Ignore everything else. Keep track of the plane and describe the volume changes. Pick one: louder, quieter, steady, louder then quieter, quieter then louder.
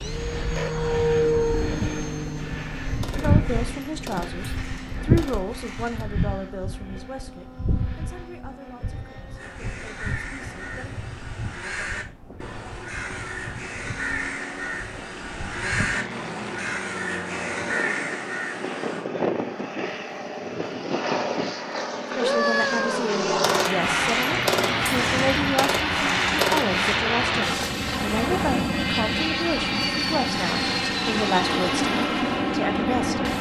quieter then louder.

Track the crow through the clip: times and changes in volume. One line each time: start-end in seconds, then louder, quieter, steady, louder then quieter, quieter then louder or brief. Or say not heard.
9.3-19.1 louder.